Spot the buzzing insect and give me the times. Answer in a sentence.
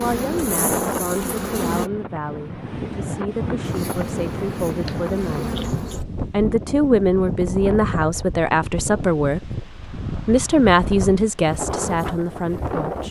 The buzzing insect can be heard from 0.0 to 1.9 s and from 3.6 to 6.0 s.